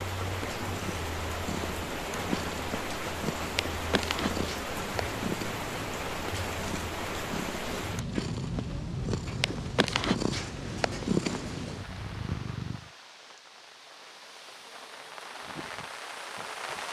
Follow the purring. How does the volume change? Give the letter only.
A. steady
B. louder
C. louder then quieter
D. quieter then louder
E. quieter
B.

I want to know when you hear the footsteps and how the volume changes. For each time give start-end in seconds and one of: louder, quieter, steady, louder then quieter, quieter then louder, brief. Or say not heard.
not heard.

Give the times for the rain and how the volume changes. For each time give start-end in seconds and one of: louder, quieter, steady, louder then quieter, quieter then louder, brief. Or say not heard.
0.0-16.8 quieter.